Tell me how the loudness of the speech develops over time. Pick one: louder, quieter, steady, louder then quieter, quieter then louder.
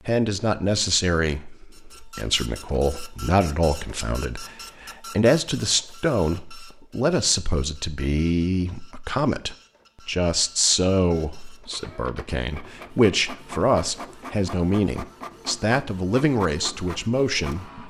steady.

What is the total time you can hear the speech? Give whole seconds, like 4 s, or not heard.
18 s.